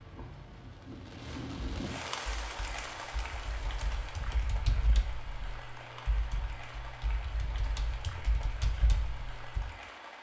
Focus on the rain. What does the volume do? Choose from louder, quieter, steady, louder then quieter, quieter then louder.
quieter.